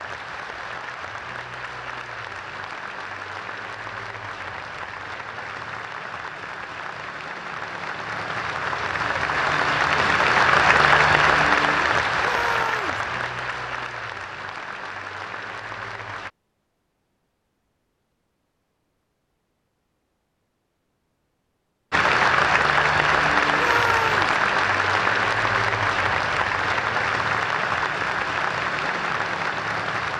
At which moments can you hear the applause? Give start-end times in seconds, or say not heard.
0.0-16.3, 21.9-30.1.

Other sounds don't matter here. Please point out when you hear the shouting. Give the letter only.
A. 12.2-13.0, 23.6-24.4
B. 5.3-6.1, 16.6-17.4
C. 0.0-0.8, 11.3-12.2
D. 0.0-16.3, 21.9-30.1
A.